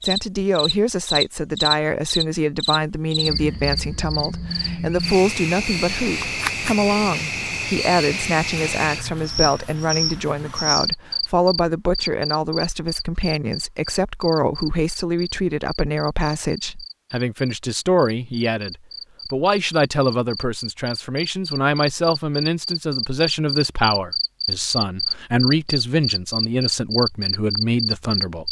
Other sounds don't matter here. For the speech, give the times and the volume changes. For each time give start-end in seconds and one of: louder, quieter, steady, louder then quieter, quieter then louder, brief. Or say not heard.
0.0-28.4 steady.